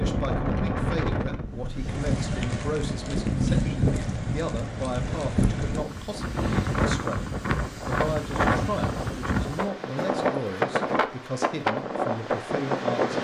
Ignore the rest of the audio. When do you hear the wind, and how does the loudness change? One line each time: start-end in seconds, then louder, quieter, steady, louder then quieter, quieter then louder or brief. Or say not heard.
0.0-13.1 steady.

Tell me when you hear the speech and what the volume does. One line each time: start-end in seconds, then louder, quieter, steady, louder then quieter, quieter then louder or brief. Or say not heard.
0.0-13.1 steady.